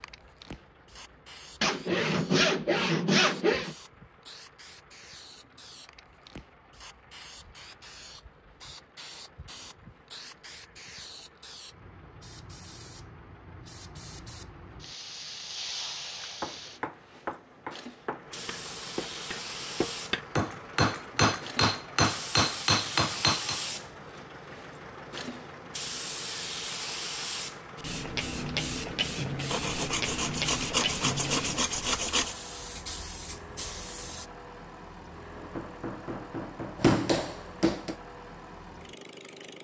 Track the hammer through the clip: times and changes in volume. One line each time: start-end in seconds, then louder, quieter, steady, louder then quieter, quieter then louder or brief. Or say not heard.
16.4-23.6 louder
35.3-38.0 brief.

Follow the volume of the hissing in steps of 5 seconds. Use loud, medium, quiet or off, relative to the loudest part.
quiet, quiet, quiet, medium, loud, loud, loud, off.